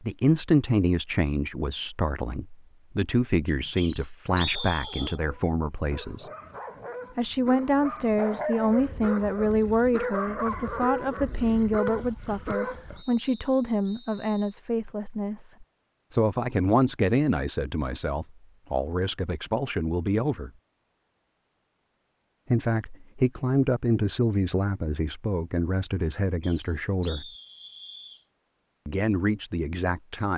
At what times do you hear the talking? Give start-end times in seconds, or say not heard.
0.0-6.3, 7.2-20.5, 22.5-27.2, 28.9-30.3.